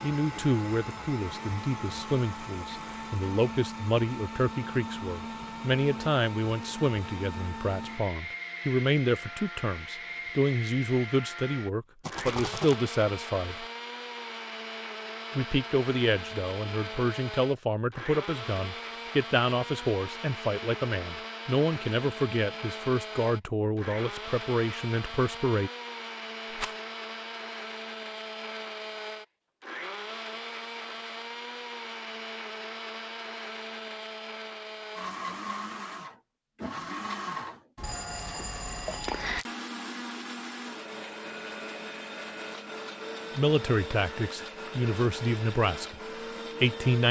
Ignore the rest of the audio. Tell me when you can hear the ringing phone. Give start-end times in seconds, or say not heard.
37.8-39.5.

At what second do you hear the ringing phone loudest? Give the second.
39 s.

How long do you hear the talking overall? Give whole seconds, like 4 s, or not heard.
28 s.